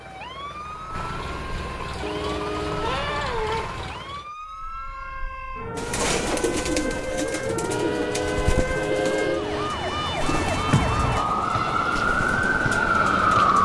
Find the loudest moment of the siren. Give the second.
13 s.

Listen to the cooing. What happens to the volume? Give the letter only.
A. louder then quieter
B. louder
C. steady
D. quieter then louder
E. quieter
E.